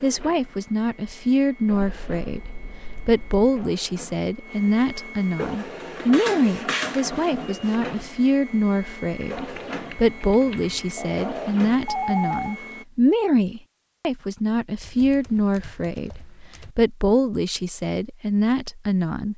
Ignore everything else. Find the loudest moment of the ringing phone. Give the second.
12 s.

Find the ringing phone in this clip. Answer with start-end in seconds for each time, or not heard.
10.9-12.6.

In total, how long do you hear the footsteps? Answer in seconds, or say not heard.
not heard.